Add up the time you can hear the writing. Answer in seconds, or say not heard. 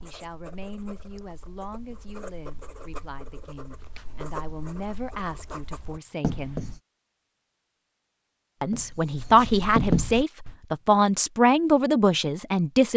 9 s.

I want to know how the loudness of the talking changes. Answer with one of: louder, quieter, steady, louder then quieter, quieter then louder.
louder.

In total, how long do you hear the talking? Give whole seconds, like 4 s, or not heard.
11 s.